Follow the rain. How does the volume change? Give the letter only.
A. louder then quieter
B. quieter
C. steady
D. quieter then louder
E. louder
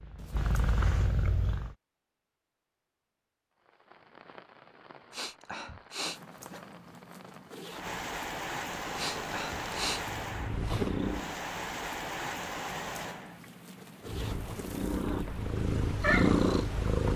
A.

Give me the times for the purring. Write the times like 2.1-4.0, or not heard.
0.0-1.8, 8.7-11.4, 14.1-17.1.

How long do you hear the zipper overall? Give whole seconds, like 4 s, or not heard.
5 s.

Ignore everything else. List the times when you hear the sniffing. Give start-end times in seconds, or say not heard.
5.1-6.2, 8.9-10.0.